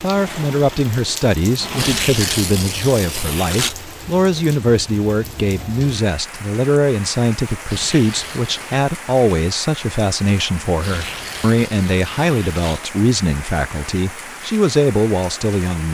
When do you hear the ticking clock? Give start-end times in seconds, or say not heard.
not heard.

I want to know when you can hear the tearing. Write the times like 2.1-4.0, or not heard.
1.8-3.8, 7.7-8.8, 10.8-12.9.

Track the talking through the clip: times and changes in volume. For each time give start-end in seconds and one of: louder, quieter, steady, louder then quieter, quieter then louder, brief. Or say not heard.
0.0-15.8 steady.